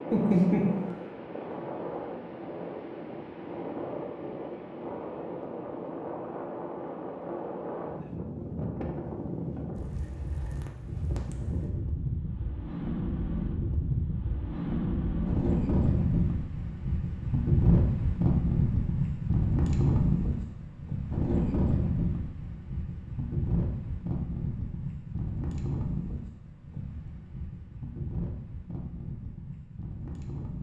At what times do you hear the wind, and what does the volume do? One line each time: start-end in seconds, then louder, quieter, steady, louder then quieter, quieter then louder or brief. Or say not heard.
0.0-30.5 louder then quieter.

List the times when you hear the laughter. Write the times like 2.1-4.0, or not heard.
0.1-0.9.